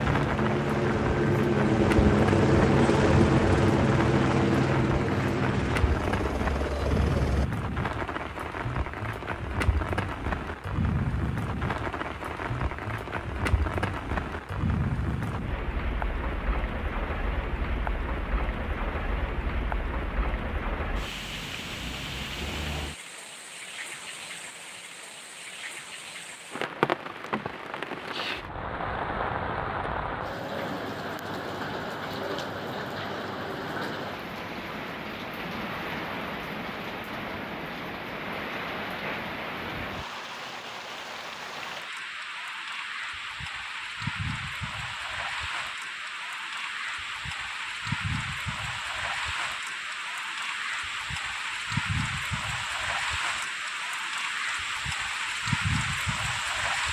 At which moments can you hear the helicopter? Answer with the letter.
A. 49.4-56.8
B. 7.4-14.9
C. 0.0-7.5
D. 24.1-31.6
C.